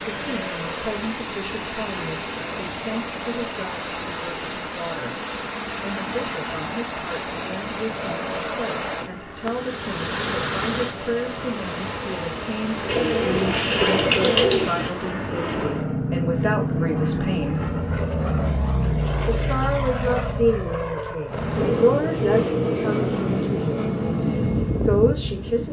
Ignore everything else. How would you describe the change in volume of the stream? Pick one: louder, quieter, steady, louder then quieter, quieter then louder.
steady.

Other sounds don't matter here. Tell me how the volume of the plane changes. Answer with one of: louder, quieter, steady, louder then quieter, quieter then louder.
louder.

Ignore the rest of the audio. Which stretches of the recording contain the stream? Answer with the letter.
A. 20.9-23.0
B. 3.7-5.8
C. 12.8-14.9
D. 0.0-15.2
D.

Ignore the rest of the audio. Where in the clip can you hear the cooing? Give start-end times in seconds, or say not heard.
12.8-14.9.